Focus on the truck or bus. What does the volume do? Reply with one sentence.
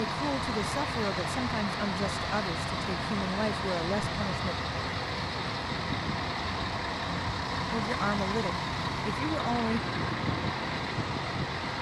The volume of the truck or bus stays about the same.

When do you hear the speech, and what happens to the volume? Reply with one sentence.
You can hear the speech from 0.0 to 4.5 s, at a steady volume; and briefly from 7.7 to 9.8 s.